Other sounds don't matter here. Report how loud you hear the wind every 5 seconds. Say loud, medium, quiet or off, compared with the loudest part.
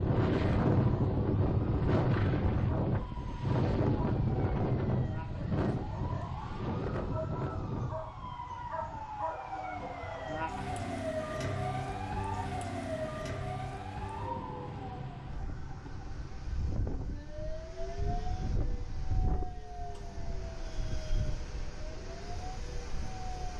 loud, medium, quiet, quiet, quiet.